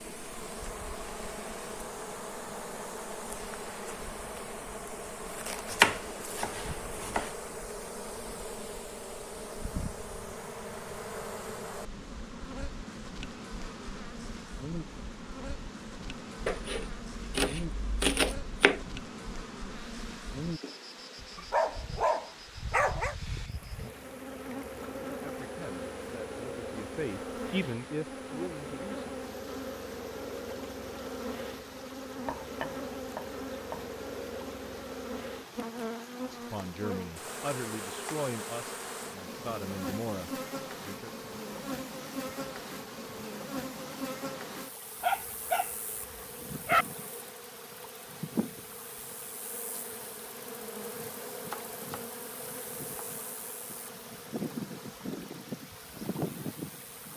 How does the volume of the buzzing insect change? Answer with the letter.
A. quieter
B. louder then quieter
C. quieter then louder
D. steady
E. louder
D.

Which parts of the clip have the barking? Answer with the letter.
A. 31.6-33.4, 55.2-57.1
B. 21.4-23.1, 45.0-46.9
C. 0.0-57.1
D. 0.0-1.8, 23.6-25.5
B.